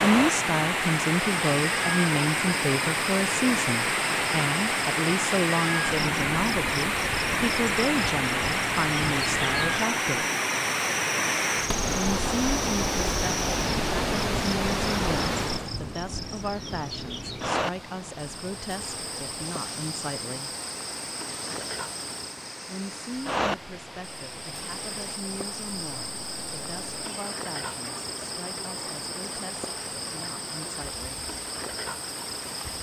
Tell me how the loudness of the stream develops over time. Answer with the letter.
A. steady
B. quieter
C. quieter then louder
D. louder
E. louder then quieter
B.